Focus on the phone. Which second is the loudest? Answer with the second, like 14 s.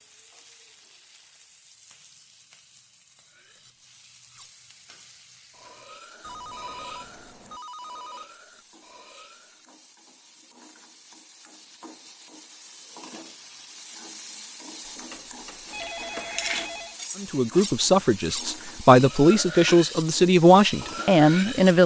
16 s.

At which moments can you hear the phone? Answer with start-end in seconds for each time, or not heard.
6.2-8.2, 14.8-16.9.